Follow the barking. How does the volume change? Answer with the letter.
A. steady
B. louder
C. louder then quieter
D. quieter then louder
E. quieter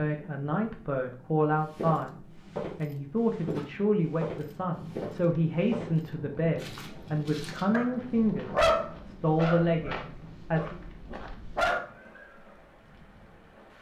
E.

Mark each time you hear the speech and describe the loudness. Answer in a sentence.
The speech can be heard from 0.0 to 10.8 s, at a steady volume.